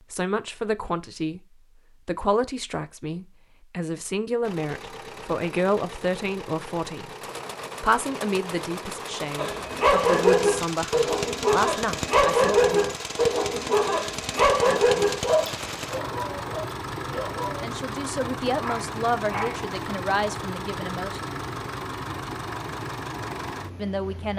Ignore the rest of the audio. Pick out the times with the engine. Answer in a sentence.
You can hear the engine from 4.4 to 24.3 s.